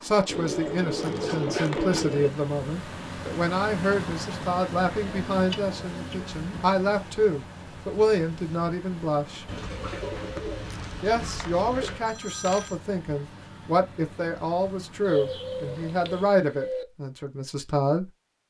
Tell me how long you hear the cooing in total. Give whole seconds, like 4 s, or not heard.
8 s.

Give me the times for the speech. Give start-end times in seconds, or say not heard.
0.0-9.4, 11.0-18.1.